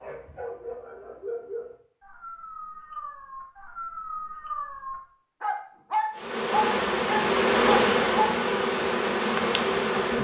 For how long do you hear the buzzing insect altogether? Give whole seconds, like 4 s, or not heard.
4 s.